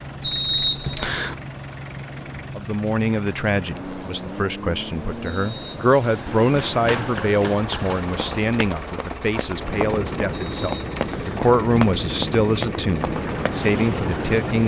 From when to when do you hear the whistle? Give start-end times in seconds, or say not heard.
0.2-1.4, 5.2-6.3, 10.3-11.4.